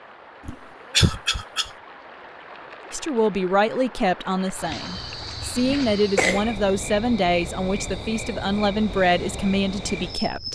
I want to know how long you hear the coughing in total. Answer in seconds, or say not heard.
2 s.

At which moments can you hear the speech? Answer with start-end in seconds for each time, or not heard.
2.9-10.5.